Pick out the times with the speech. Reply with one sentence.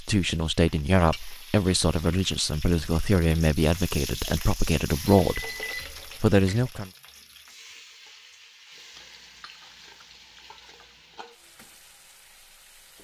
The speech can be heard from 0.0 to 5.5 s and from 6.2 to 6.9 s.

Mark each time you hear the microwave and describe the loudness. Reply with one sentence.
The microwave can't be heard in this clip.